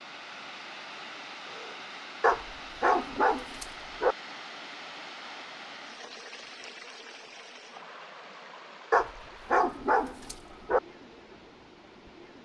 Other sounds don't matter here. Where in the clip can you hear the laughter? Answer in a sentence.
You can't hear the laughter here.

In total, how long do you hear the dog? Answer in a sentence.
You can hear the dog for 4 seconds altogether.